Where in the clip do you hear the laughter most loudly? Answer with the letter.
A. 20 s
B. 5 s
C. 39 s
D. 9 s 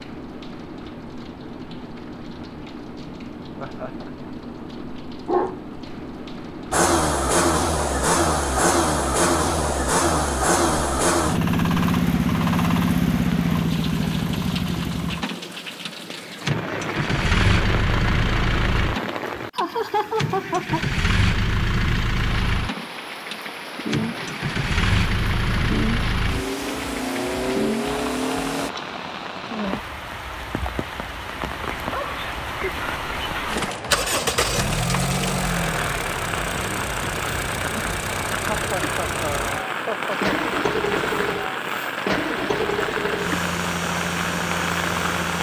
A.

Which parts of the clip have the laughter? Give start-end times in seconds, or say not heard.
3.5-4.3, 19.5-21.0, 38.5-40.4.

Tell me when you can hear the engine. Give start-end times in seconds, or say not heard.
6.7-28.7, 33.5-45.3.